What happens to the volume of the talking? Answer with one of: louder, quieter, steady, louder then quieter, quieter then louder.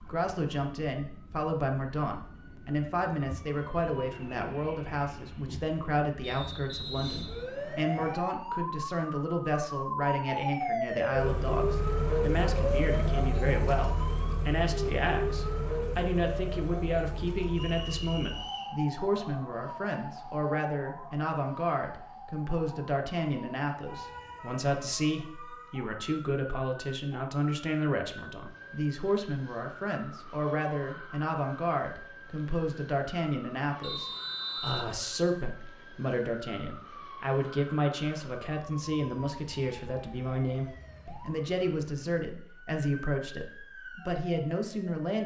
steady.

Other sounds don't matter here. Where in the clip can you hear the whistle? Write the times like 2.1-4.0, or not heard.
6.2-8.2, 17.5-18.8, 33.8-35.0.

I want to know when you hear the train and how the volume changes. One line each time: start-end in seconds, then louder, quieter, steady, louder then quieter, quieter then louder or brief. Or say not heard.
not heard.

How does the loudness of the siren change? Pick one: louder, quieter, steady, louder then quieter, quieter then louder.
louder then quieter.